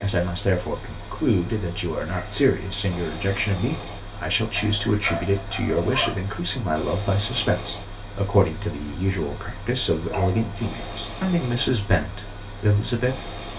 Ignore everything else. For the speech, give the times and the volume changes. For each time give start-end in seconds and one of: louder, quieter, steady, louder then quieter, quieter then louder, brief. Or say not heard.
0.0-13.3 steady.